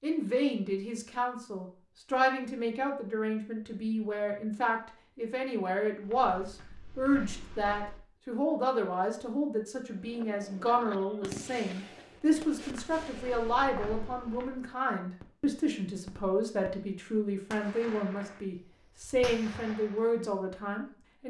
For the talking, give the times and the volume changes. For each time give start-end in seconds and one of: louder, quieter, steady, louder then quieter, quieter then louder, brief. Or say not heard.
0.0-21.2 steady.